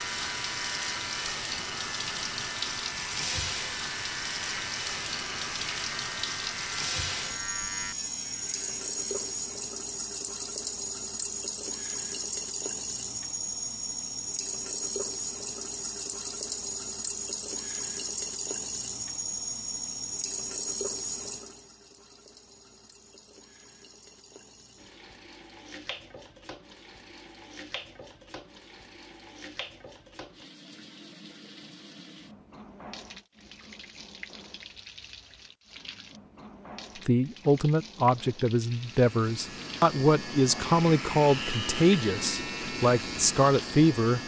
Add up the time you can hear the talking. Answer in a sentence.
You can hear the talking for 7 seconds altogether.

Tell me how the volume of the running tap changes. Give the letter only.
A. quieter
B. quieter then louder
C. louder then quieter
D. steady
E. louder
A.